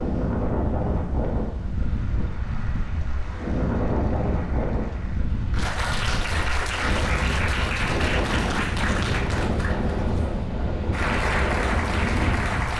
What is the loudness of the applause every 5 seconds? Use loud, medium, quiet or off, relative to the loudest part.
quiet, loud, loud.